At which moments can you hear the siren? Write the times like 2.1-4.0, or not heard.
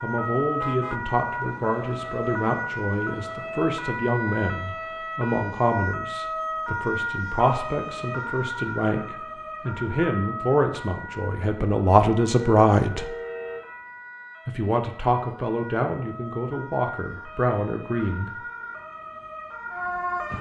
0.0-20.3.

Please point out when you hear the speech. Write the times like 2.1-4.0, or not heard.
0.0-13.1, 14.4-18.4.